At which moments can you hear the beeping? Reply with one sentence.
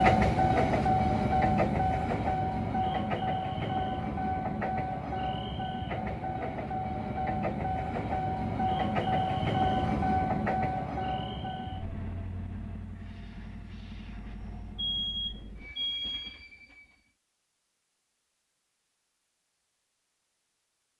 The beeping can be heard from 14.8 to 16.4 s.